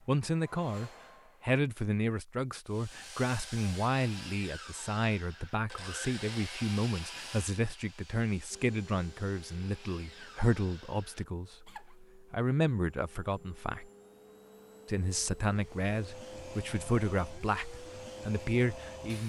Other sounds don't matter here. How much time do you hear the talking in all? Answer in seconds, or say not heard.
18 s.